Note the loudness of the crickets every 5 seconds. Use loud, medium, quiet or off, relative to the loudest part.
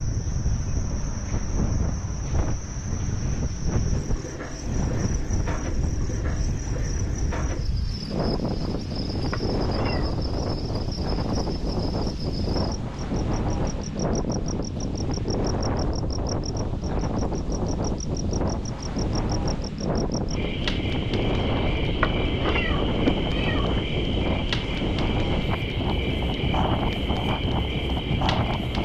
medium, medium, medium, medium, loud, loud.